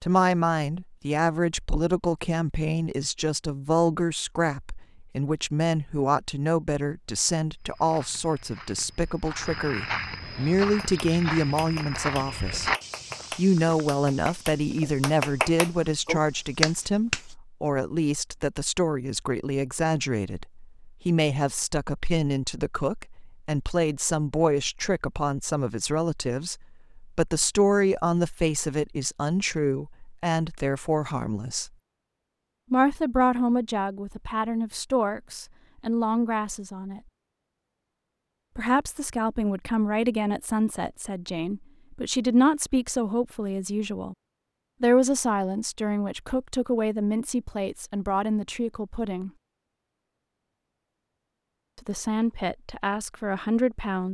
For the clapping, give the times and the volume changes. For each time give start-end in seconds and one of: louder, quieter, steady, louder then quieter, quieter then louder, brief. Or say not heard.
10.8-17.4 louder.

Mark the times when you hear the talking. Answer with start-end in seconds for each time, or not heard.
0.0-12.7, 13.3-31.7, 32.7-37.0, 38.5-44.1, 44.8-49.3, 51.8-54.0.